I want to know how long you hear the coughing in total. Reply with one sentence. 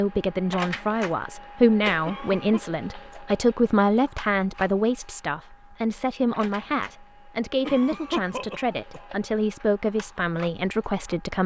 The coughing can be heard for 2 seconds in total.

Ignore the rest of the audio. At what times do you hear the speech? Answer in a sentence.
The speech can be heard from 0.0 to 11.4 s.